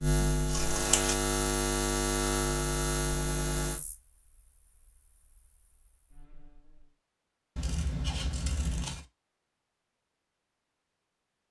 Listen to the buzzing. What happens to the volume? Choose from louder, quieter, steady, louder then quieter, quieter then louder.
quieter then louder.